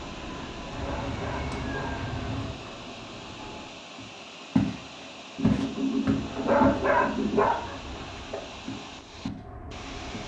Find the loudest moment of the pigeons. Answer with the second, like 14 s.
7 s.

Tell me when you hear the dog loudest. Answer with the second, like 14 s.
7 s.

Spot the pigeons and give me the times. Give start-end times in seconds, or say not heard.
0.7-2.6, 5.3-7.4.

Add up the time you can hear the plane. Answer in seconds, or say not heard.
8 s.